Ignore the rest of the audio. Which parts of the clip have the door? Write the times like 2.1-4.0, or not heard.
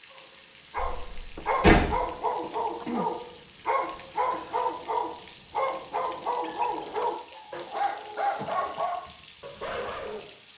0.8-2.0.